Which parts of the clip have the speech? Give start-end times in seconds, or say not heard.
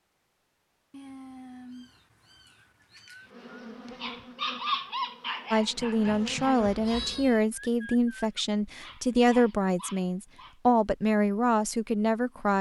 5.5-12.5.